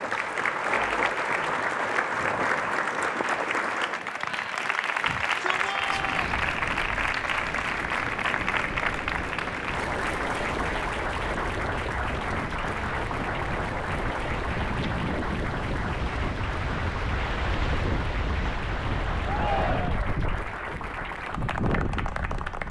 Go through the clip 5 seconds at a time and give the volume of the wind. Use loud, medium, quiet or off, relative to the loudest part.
loud, medium, loud, loud, loud.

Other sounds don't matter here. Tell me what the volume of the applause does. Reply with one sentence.
The volume of the applause goes down.